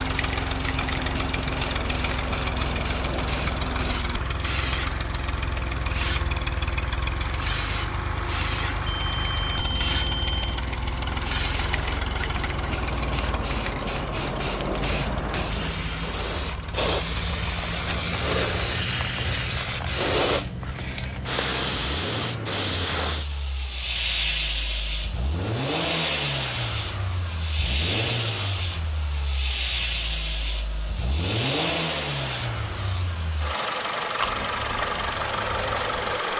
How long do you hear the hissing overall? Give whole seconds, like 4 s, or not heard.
36 s.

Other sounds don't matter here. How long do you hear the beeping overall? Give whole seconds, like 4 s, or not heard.
2 s.